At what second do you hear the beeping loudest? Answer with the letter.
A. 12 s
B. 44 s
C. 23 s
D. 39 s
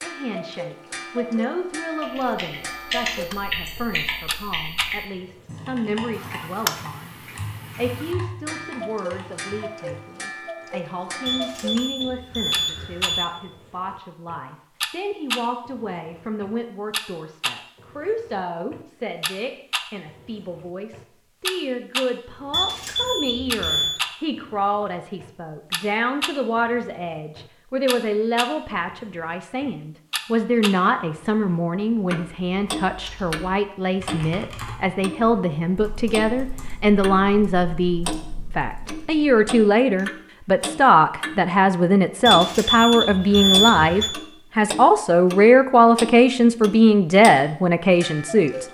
B.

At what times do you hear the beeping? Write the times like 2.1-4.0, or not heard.
11.2-13.2, 22.5-24.0, 42.2-44.1.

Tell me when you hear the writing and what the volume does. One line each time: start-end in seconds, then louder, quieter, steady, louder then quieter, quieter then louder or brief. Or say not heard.
not heard.